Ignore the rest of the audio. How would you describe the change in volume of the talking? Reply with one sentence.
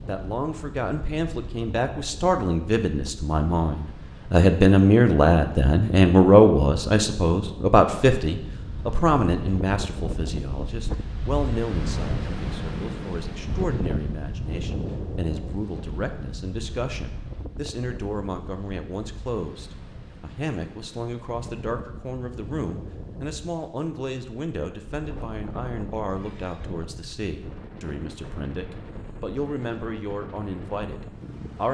The volume of the talking goes down.